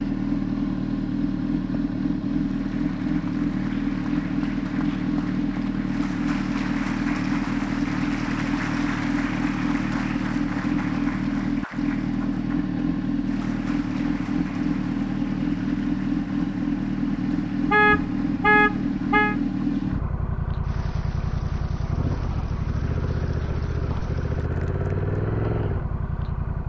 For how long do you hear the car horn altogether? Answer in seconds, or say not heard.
2 s.